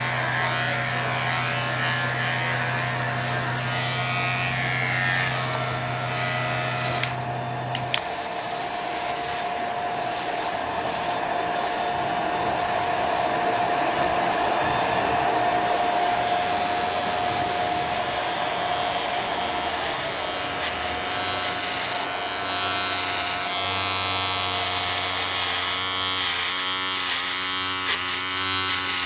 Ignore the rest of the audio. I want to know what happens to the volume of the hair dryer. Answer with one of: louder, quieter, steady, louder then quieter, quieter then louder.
louder then quieter.